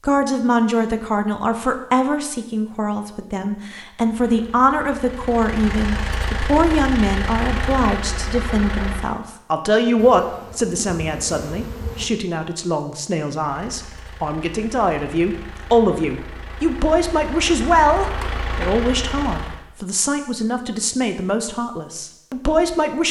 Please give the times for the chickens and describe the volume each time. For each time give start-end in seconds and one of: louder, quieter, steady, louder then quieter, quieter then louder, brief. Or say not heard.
not heard.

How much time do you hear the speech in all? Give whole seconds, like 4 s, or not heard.
23 s.